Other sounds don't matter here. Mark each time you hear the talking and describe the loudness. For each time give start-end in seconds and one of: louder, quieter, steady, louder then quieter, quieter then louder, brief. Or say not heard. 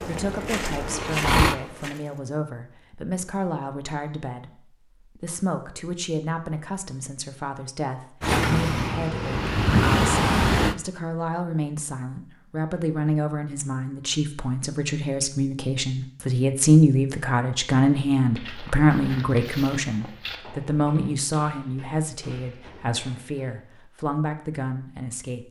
0.1-25.4 louder then quieter.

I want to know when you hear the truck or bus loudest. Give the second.
10 s.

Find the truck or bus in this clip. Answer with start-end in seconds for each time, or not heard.
0.2-1.6, 8.2-10.8.